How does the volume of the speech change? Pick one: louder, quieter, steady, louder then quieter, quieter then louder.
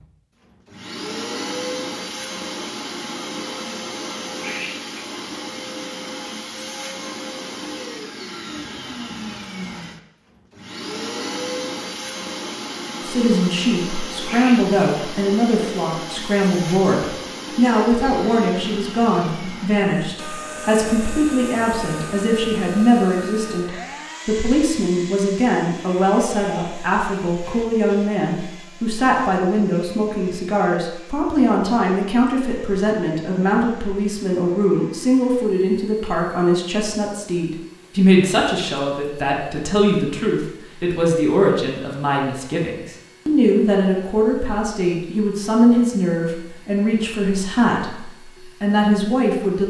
steady.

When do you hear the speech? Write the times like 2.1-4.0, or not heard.
13.1-49.6.